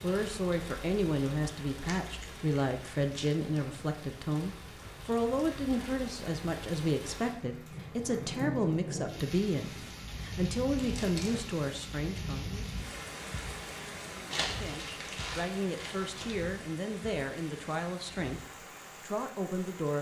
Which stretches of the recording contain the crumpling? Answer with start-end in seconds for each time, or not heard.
1.9-3.6, 10.8-11.5, 14.3-16.4.